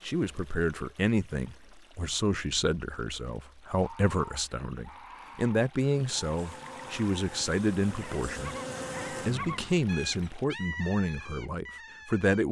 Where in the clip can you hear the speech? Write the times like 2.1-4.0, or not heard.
0.0-12.4.